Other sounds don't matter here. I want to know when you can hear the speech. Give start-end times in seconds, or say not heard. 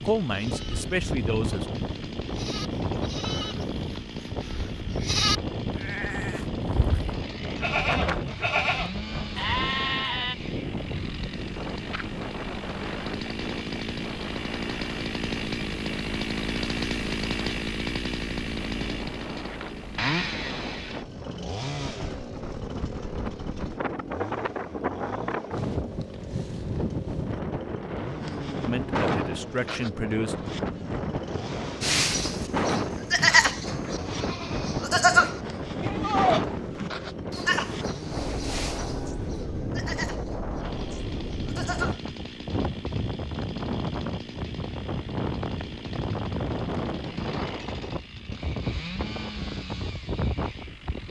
0.0-1.6, 28.6-30.5.